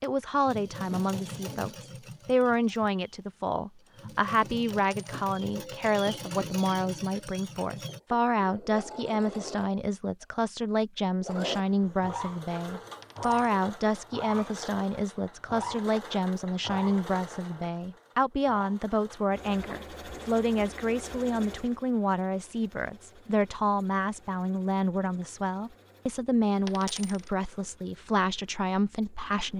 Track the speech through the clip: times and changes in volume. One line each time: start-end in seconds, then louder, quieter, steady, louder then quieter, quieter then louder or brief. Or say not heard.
0.0-29.5 steady.